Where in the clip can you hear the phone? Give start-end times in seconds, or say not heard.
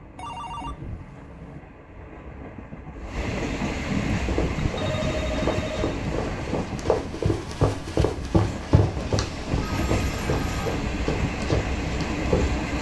0.1-1.6, 4.7-6.0, 8.8-10.7.